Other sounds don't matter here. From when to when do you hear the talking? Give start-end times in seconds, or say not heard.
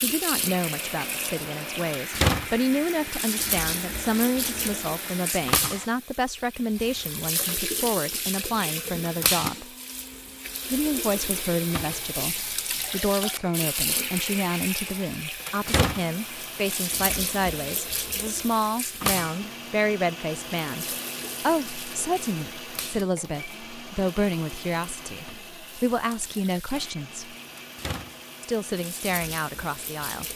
0.0-9.7, 10.7-27.4, 28.4-30.2.